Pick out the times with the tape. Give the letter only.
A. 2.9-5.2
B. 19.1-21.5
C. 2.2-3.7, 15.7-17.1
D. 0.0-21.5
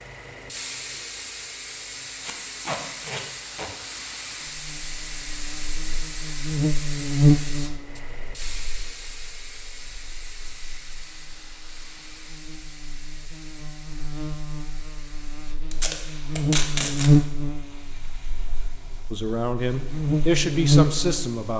C.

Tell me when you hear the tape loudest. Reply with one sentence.
The volume of the tape peaks at 17 seconds.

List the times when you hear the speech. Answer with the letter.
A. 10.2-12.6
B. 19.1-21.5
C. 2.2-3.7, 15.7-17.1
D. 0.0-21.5
B.